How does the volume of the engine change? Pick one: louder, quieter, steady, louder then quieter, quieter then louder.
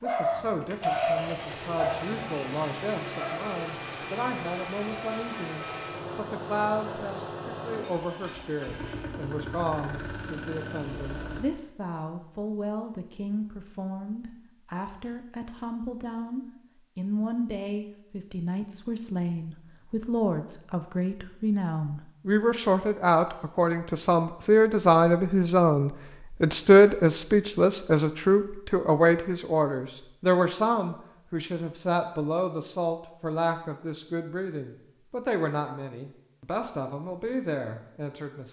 steady.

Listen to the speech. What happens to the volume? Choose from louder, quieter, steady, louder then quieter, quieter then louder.
louder then quieter.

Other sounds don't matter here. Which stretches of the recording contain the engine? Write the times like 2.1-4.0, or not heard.
0.0-11.4.